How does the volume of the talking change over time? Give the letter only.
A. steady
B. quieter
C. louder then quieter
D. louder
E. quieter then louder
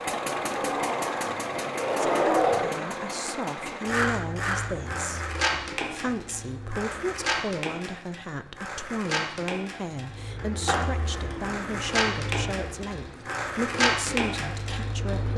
A.